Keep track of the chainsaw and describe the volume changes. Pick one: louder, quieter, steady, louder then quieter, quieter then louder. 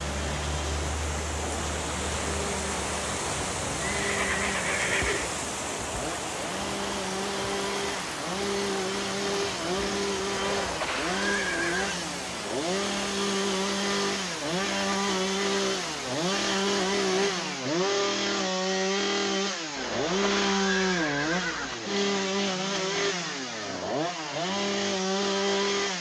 louder.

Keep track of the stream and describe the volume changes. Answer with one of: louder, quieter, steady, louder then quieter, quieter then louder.
quieter.